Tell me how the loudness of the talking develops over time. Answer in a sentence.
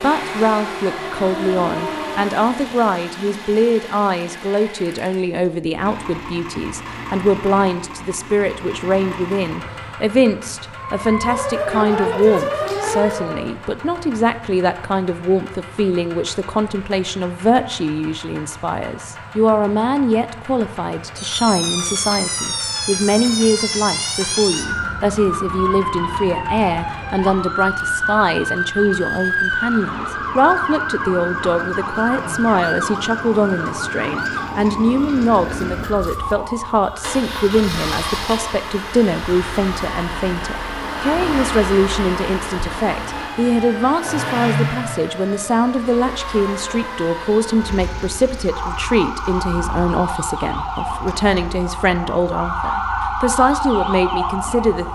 The volume of the talking stays about the same.